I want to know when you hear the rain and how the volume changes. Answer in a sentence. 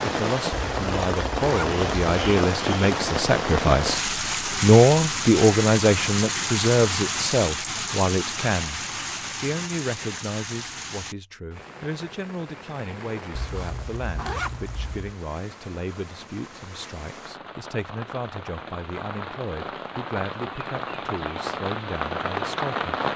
The rain can be heard from 0.0 to 23.1 s, getting quieter then louder.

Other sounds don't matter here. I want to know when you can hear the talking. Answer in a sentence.
The talking can be heard from 0.0 to 22.9 s.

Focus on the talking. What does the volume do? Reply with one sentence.
The loudness of the talking goes down.